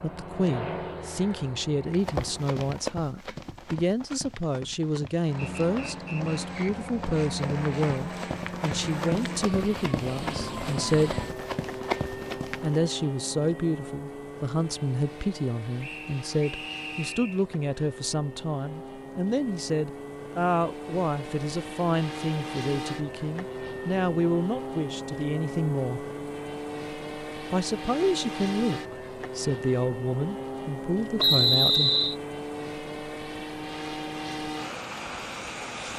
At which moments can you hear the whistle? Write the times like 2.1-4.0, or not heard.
5.6-6.9, 15.8-17.4, 31.1-32.1.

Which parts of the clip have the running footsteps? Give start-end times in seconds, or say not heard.
1.9-12.8.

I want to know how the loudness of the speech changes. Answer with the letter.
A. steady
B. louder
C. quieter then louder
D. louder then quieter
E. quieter
A.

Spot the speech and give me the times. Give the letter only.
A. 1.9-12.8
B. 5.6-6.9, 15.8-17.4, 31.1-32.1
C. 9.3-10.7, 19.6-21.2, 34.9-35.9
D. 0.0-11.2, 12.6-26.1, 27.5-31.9
D.